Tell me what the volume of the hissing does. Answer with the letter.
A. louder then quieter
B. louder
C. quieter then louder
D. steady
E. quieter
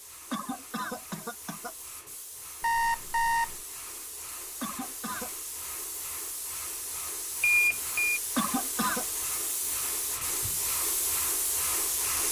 B.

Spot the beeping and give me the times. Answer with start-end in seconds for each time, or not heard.
2.6-3.6, 7.4-8.2.